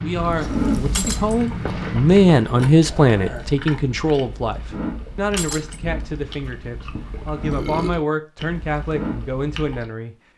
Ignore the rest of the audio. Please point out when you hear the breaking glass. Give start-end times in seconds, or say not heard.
0.9-1.4, 5.3-5.8.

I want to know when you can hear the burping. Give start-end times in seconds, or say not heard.
2.8-3.5, 7.4-8.0.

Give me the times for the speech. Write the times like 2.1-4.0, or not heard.
0.0-10.2.